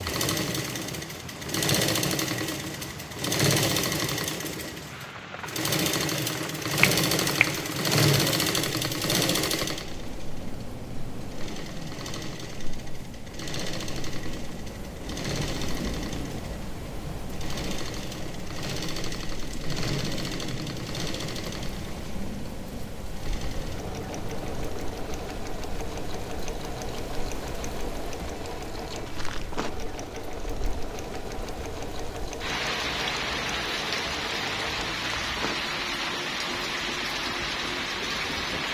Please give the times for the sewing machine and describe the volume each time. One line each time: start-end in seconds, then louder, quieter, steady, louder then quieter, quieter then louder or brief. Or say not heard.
0.0-38.6 quieter.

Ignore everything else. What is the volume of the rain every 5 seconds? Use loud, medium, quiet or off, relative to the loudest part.
medium, medium, medium, medium, medium, medium, loud, loud.